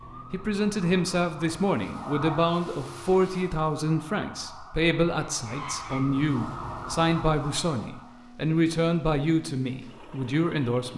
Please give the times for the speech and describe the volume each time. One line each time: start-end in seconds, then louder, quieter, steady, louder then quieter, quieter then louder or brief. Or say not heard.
0.3-10.9 steady.